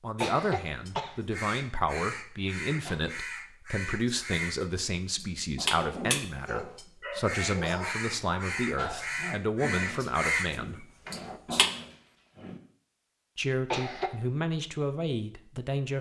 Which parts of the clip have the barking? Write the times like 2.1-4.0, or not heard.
5.7-12.6.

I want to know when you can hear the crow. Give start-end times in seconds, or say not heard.
0.1-11.7.